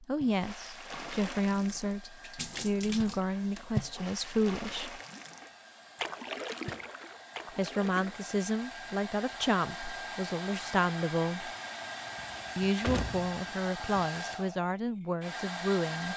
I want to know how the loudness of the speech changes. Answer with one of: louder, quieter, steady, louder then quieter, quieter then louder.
steady.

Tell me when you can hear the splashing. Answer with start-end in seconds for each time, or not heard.
0.2-8.3.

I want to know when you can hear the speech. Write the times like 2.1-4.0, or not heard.
0.0-5.0, 7.5-11.5, 12.6-16.1.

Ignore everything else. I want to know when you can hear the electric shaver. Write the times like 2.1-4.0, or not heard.
not heard.